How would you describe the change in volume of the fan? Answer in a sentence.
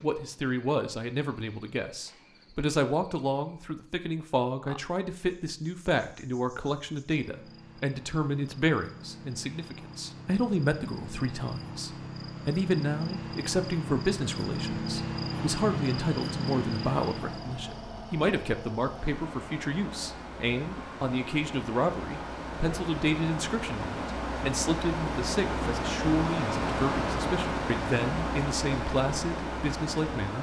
The volume of the fan goes up.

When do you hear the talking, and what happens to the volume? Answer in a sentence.
The talking can be heard from 0.0 to 30.3 s, at a steady volume.